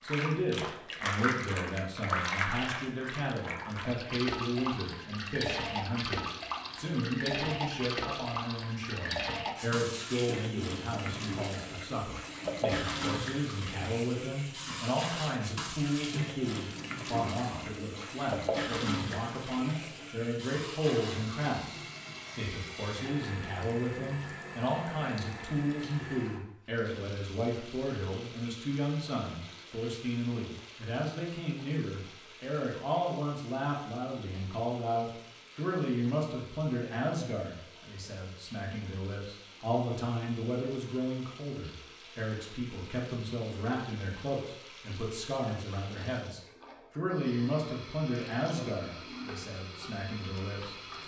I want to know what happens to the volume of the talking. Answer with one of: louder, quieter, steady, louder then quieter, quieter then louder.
steady.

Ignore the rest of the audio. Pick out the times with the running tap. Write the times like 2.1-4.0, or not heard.
0.0-51.0.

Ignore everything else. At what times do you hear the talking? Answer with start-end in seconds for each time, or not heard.
0.0-50.8.